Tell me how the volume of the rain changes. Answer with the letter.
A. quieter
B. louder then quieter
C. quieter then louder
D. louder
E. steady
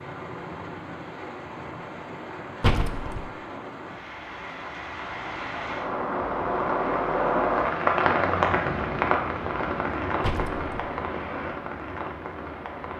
B.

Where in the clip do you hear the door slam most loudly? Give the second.
3 s.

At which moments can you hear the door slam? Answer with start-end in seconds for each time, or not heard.
2.6-3.2, 10.2-10.9.